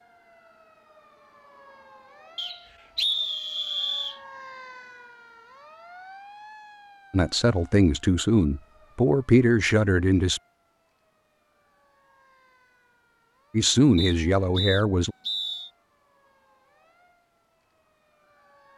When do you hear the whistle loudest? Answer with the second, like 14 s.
3 s.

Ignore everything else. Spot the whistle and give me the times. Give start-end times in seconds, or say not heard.
2.4-4.2, 13.9-15.7.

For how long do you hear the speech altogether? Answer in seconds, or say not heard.
5 s.